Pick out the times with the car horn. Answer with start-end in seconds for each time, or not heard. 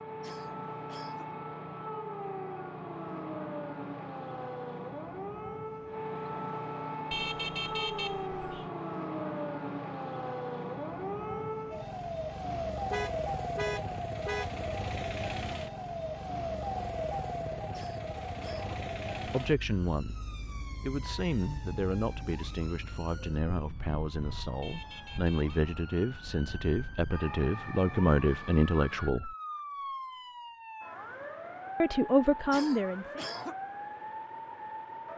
7.1-8.7, 12.9-14.5, 24.6-25.6.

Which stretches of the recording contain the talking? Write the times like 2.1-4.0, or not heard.
19.2-29.3, 31.8-33.2.